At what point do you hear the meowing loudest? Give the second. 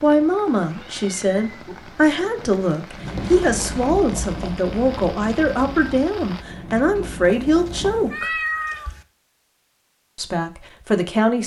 8 s.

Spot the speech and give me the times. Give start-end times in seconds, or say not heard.
0.0-8.3, 10.2-11.4.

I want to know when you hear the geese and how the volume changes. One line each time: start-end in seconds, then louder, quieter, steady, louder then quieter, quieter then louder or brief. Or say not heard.
not heard.